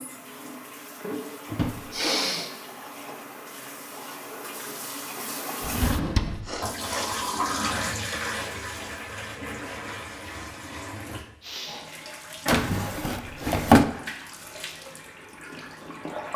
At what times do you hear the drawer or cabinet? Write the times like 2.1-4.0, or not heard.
1.5-2.0, 5.6-6.6, 12.4-13.8.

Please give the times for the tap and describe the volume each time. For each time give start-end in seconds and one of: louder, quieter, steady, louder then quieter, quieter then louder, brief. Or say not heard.
0.0-16.3 louder then quieter.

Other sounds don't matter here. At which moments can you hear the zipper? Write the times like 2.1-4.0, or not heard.
not heard.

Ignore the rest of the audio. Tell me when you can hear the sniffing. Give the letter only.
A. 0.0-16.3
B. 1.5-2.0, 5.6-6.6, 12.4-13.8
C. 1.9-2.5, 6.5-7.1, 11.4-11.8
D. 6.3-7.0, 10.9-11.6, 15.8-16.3
C.